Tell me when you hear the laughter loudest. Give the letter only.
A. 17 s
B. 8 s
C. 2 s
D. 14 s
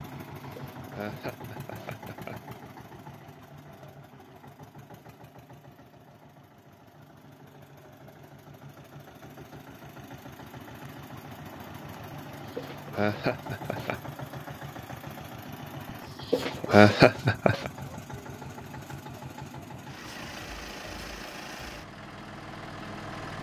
A.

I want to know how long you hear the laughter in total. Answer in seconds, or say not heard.
5 s.